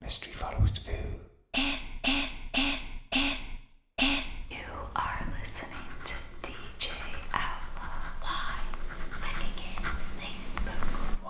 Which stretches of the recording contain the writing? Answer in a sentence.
The writing can be heard from 4.2 to 11.2 s.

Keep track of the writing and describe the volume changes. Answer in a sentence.
The loudness of the writing goes up.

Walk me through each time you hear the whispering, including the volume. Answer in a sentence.
The whispering can be heard from 0.0 to 11.2 s, getting quieter.